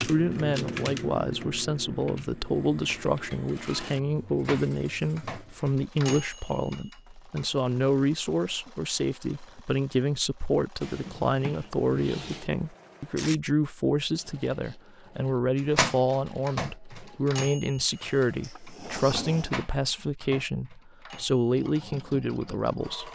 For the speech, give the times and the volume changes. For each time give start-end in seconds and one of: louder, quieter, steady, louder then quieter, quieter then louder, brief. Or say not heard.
0.0-23.1 steady.